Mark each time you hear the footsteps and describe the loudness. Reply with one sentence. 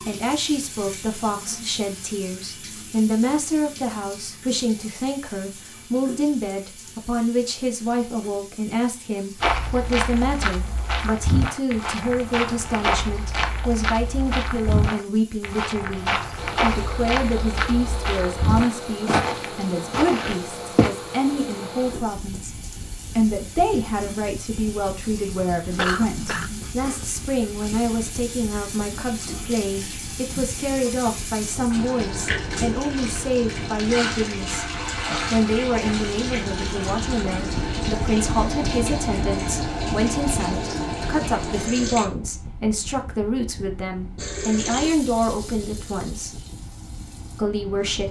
You can hear the footsteps from 9.4 to 20.9 s, at a steady volume.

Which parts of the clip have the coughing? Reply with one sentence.
The coughing can be heard from 25.8 to 26.5 s.